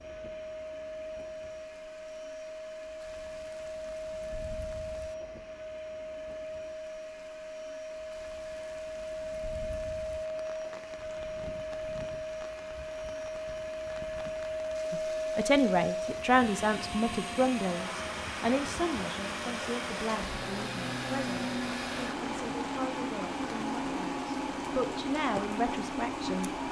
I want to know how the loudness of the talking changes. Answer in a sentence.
The volume of the talking goes down, then up.